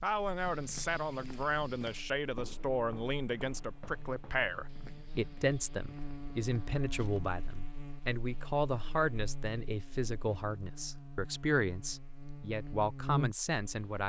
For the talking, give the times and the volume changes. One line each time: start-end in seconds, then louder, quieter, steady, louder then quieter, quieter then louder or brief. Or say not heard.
0.0-14.0 steady.